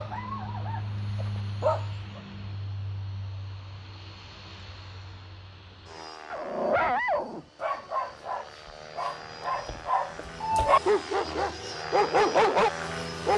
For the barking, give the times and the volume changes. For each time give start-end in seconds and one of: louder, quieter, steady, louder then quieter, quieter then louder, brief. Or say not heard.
0.0-2.2 brief
6.3-13.3 quieter then louder.